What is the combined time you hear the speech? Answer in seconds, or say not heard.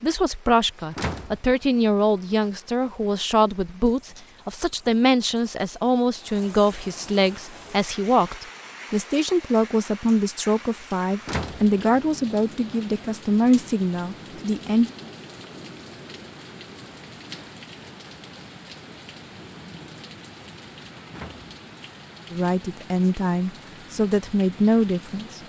18 s.